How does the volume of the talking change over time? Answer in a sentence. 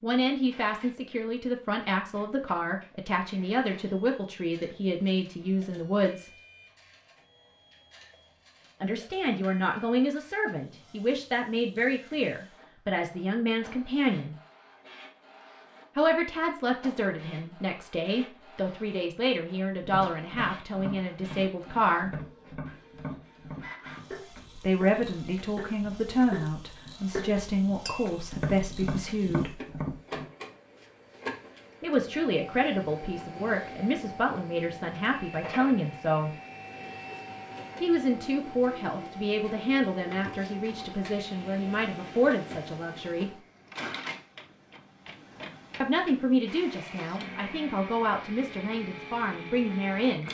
The volume of the talking stays about the same.